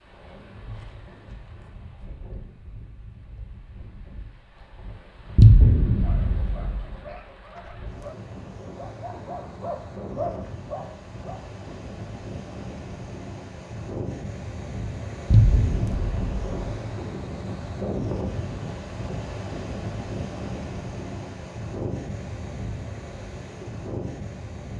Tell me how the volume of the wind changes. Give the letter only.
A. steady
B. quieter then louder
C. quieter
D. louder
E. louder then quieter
D.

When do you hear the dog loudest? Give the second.
10 s.